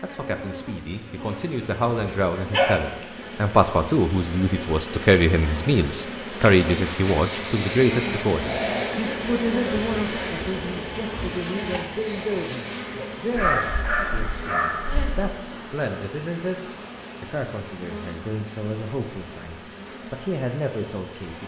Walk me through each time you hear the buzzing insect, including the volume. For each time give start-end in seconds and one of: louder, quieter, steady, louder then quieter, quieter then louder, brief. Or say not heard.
0.0-21.4 louder then quieter.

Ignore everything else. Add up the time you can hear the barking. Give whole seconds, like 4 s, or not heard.
3 s.